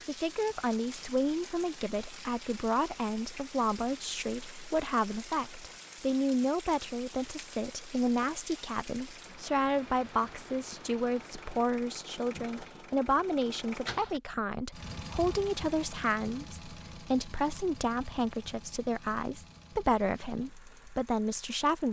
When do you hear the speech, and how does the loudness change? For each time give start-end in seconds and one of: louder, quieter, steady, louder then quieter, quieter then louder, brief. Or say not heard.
0.1-21.8 steady.